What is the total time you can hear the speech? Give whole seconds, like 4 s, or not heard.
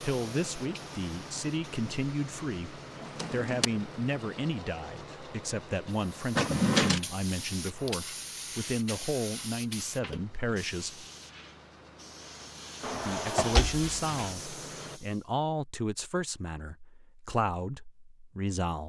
17 s.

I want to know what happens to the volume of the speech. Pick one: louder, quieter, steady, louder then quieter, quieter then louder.
steady.